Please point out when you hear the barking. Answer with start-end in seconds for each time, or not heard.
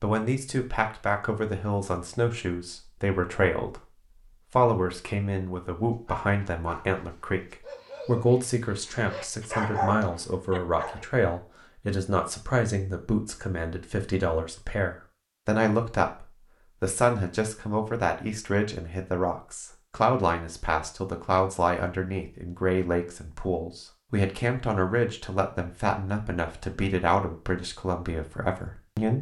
5.9-11.1.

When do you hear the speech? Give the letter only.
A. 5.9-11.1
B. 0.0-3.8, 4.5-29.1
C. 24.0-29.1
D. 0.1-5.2
B.